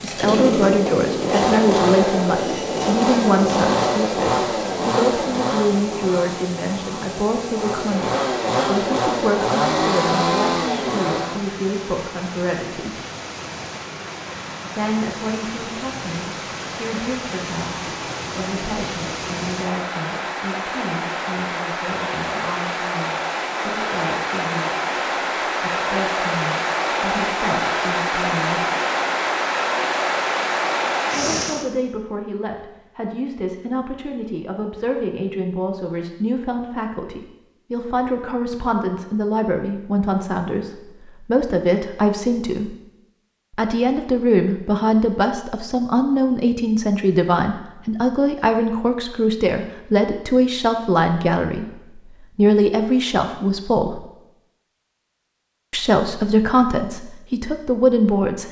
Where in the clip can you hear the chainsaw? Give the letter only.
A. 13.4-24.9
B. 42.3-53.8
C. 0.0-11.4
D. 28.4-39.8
C.